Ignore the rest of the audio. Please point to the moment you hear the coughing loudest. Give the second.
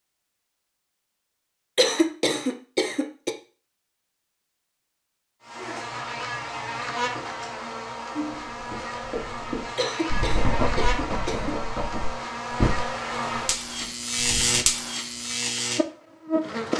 2 s.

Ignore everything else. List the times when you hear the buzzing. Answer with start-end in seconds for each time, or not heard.
5.4-16.7.